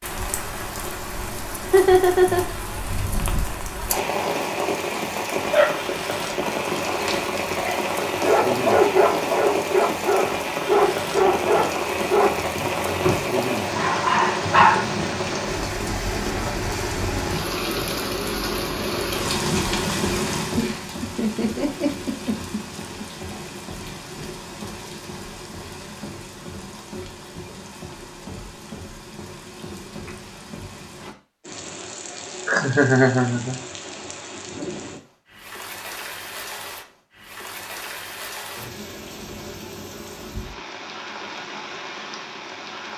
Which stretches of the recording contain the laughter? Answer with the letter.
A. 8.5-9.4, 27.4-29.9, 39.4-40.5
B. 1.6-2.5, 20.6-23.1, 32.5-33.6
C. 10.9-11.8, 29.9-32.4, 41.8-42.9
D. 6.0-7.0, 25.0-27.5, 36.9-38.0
B.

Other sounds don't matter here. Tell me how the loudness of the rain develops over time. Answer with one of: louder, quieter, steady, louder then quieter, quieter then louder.
quieter.